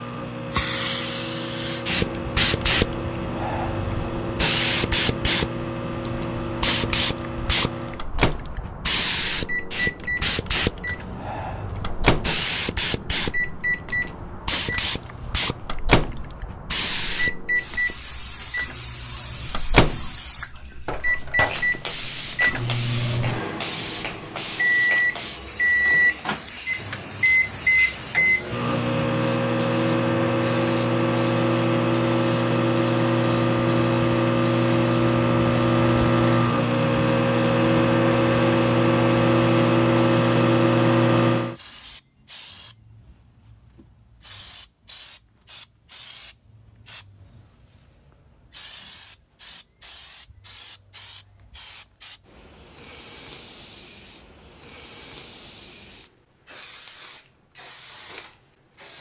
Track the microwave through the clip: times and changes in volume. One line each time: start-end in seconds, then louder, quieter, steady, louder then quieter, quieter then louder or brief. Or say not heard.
0.0-41.5 louder.